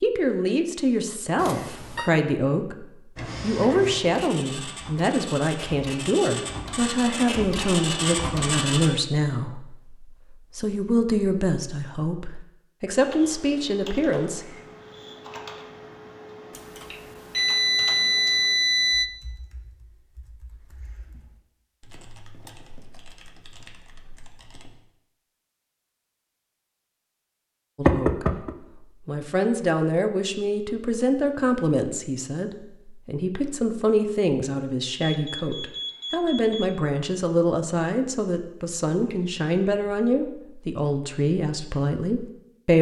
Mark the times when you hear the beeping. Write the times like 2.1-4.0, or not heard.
1.4-2.1, 16.5-19.1, 35.0-36.8.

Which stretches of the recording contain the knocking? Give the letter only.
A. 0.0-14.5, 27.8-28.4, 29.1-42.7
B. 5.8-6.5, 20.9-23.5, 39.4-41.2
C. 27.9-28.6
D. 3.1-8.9
C.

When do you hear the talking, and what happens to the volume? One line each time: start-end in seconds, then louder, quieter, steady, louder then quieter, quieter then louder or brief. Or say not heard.
0.0-14.5 steady
27.8-28.4 brief
29.1-42.7 steady.